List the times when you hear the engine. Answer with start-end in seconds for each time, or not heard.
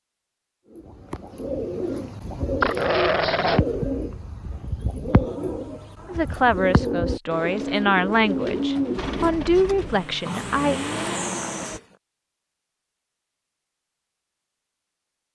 8.9-11.8.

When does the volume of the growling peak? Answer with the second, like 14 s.
3 s.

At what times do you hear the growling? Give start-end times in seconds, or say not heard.
2.6-3.6, 10.2-11.9.